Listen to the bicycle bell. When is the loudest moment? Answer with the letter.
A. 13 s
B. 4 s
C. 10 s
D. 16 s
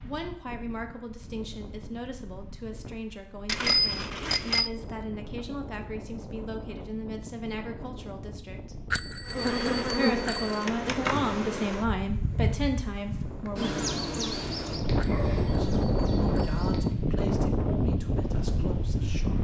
B.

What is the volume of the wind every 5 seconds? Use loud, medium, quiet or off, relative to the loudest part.
quiet, quiet, medium, loud.